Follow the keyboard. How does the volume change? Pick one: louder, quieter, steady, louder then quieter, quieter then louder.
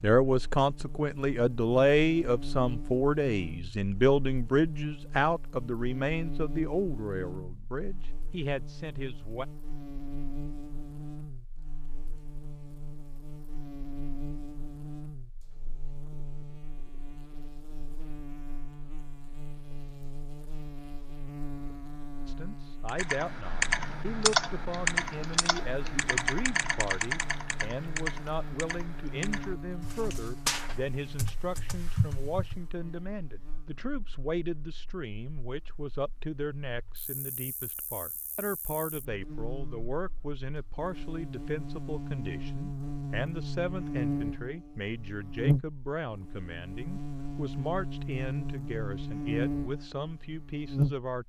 quieter.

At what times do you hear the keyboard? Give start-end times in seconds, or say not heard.
22.9-32.7.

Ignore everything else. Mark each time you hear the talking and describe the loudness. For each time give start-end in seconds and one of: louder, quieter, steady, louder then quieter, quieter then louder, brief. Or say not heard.
0.0-9.4 quieter
22.2-51.2 steady.